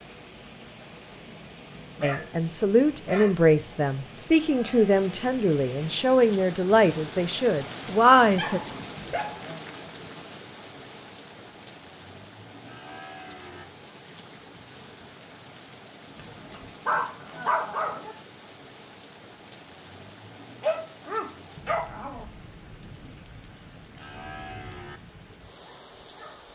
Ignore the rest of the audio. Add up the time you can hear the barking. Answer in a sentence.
You can hear the barking for 7 seconds altogether.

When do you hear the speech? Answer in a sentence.
The speech can be heard from 2.0 to 8.6 s.